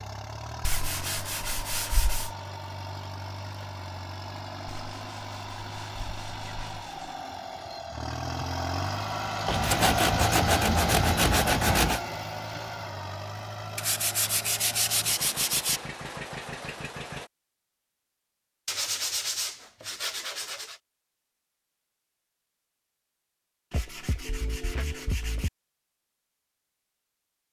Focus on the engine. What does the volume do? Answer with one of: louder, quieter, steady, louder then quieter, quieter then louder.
louder then quieter.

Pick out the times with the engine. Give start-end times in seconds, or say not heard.
0.0-17.3.